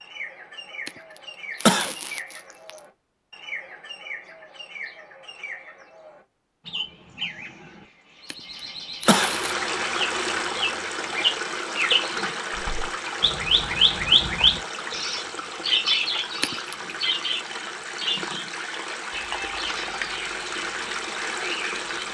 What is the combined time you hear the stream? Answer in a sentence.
The stream can be heard for 13 seconds in total.